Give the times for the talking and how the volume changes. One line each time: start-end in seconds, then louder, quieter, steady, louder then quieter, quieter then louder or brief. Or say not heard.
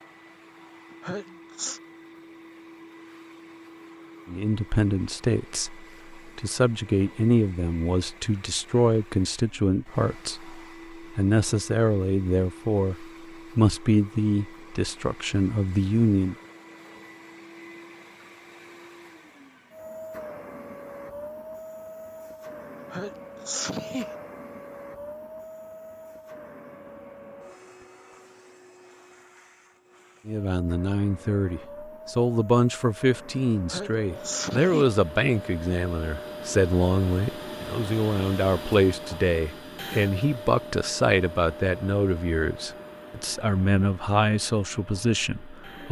4.2-16.4 steady
30.2-45.8 steady.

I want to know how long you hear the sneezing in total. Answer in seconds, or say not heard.
4 s.